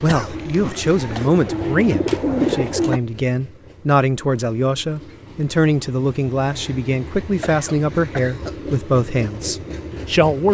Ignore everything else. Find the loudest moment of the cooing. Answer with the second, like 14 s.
2 s.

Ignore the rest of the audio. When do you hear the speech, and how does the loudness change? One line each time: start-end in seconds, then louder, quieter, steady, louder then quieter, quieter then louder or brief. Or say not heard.
0.0-10.4 steady.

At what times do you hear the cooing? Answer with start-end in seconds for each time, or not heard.
0.1-3.0.